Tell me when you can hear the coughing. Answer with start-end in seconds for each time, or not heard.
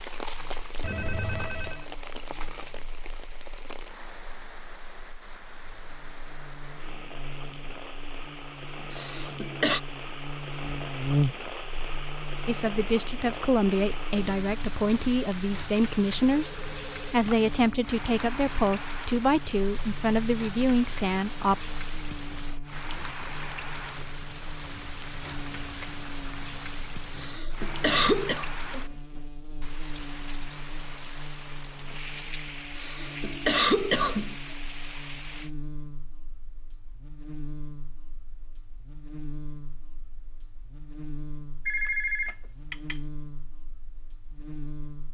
8.9-9.8, 27.1-28.4, 32.8-34.4.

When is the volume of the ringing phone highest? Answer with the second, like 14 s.
42 s.